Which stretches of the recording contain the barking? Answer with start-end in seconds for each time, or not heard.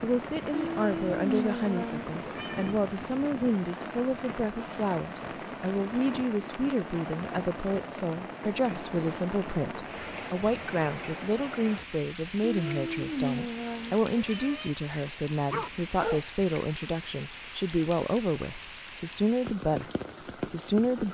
15.1-16.4.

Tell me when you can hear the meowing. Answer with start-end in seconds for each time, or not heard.
0.5-2.8, 12.4-14.8.